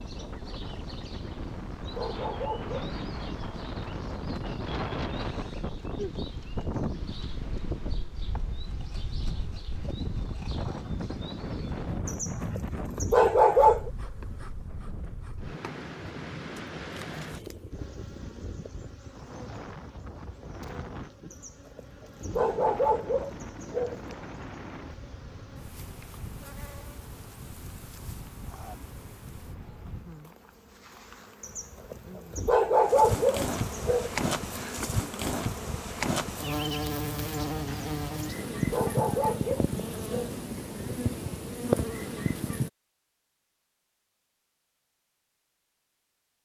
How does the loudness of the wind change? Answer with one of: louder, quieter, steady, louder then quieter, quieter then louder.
quieter.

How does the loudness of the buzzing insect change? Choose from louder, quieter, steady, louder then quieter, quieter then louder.
louder.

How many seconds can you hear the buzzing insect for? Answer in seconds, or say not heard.
43 s.